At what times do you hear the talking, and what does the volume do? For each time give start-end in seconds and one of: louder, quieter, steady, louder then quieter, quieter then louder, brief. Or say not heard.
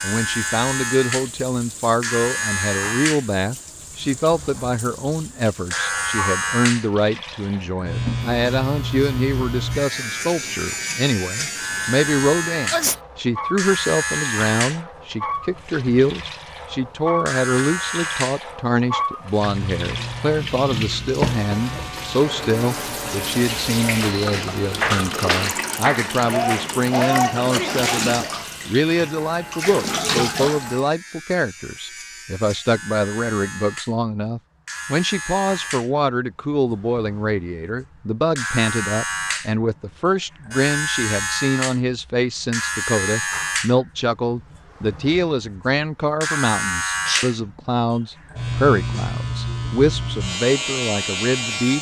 0.0-51.7 steady.